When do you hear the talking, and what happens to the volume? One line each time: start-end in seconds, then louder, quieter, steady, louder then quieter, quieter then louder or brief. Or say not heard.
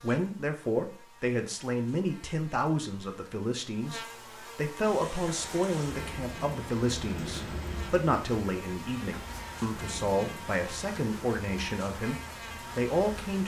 0.0-13.4 steady.